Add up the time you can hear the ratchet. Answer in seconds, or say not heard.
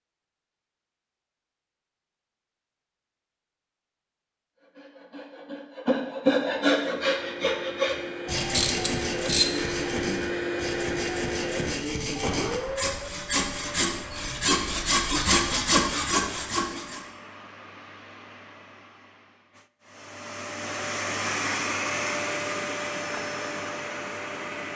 2 s.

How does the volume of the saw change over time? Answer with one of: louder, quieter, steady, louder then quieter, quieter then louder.
quieter then louder.